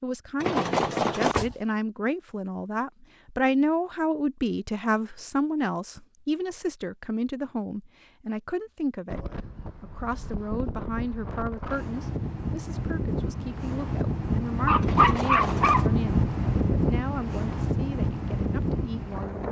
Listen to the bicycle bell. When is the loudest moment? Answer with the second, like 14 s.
1 s.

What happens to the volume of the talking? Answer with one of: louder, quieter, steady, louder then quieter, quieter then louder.
quieter.